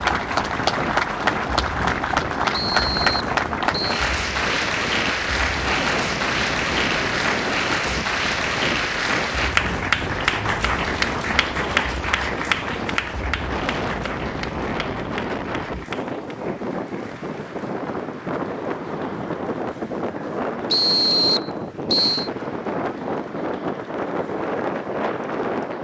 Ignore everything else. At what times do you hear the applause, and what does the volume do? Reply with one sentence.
You can hear the applause from 0.0 to 25.7 s, getting quieter.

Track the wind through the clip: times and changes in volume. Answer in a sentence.
The wind can be heard from 0.0 to 25.7 s, at a steady volume.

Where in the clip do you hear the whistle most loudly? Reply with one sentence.
The loudest moment of the whistle is at 21 seconds.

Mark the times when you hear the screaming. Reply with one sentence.
You can't hear the screaming here.